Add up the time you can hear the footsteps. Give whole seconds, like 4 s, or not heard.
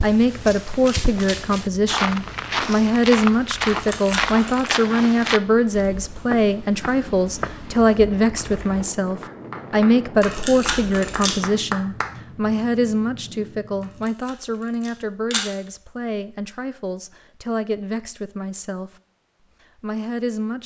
9 s.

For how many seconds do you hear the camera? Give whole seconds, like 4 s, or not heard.
4 s.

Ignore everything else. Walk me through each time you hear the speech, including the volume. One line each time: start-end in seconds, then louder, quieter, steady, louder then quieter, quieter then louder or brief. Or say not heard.
0.0-18.9 quieter
19.8-20.6 brief.